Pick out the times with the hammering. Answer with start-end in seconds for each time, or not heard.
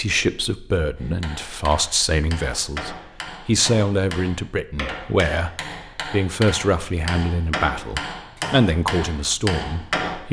0.9-10.2.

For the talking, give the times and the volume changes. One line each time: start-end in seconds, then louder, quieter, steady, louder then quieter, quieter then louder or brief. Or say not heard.
0.0-10.2 steady.